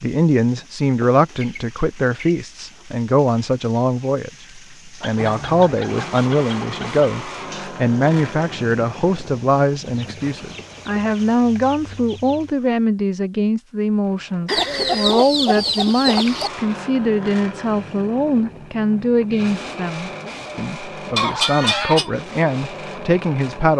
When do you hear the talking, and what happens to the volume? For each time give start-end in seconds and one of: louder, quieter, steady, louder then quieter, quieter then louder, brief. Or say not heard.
0.0-23.7 steady.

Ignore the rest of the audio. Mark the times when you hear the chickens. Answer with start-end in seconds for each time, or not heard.
1.0-2.9, 5.0-7.0, 9.8-12.6, 14.4-16.5, 21.1-22.1.